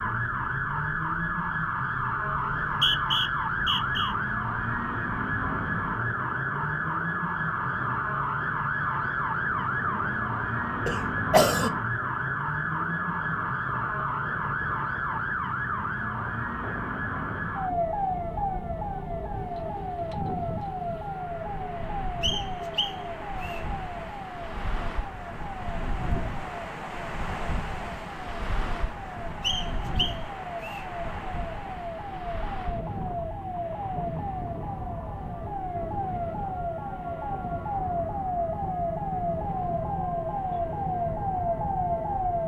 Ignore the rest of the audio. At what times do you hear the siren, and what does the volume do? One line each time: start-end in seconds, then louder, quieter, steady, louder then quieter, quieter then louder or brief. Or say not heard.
0.0-42.4 quieter then louder.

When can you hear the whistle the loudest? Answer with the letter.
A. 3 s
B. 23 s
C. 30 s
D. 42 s
A.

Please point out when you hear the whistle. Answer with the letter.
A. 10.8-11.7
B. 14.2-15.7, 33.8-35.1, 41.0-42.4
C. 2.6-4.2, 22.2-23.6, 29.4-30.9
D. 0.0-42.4
C.